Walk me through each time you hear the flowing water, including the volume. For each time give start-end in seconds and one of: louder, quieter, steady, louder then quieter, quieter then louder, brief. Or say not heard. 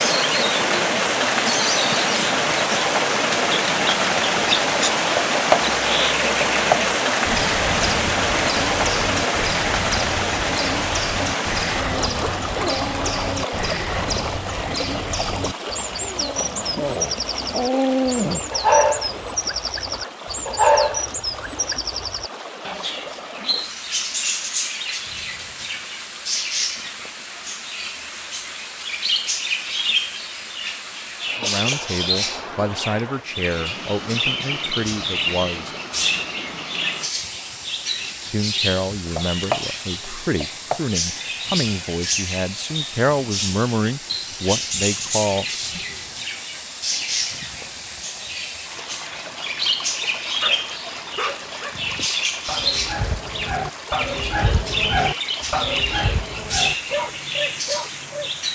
0.0-58.4 quieter.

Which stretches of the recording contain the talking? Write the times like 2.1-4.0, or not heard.
31.4-35.8, 38.3-45.8.